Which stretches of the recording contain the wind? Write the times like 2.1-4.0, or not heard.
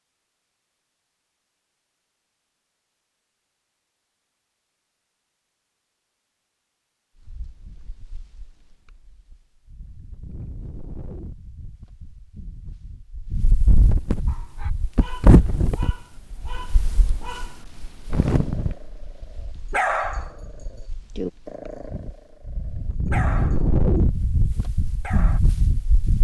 7.2-26.1.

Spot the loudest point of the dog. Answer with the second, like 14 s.
20 s.